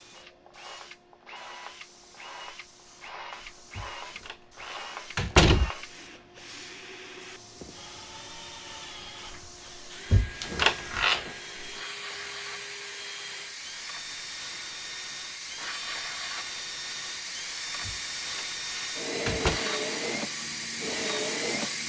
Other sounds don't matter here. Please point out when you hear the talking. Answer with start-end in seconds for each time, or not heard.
not heard.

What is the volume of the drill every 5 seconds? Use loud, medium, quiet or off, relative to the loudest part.
medium, medium, medium, loud, loud.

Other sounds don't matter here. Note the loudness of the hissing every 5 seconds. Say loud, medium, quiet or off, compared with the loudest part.
quiet, quiet, medium, loud, loud.